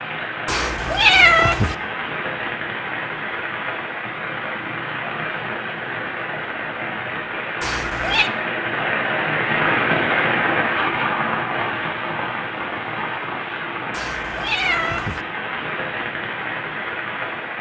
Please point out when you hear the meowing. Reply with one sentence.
You can hear the meowing from 0.5 to 1.8 s, from 7.6 to 8.3 s and from 13.9 to 15.2 s.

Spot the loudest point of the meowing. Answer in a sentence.
The loudest moment of the meowing is at 1 second.